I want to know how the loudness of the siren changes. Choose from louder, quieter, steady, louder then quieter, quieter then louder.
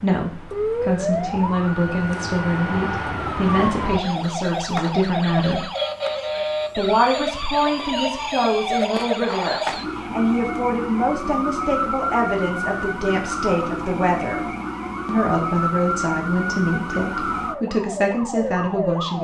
steady.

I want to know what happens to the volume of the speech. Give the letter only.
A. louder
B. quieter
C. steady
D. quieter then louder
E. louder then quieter
C.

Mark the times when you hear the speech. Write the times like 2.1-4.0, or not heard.
0.0-5.7, 6.8-14.4, 15.1-19.1.